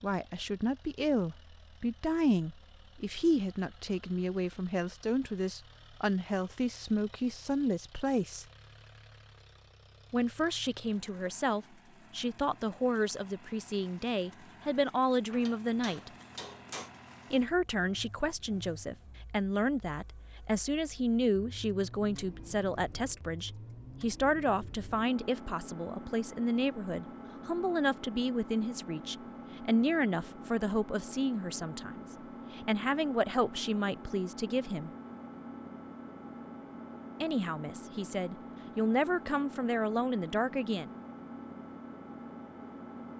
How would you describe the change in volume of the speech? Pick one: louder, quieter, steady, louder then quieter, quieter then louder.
steady.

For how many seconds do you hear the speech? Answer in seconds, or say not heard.
36 s.